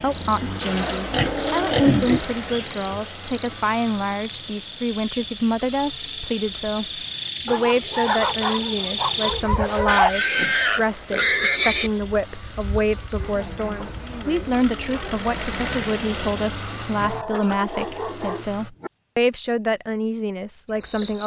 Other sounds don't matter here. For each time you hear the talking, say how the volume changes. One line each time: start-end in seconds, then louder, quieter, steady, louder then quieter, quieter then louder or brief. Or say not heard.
0.0-21.2 steady.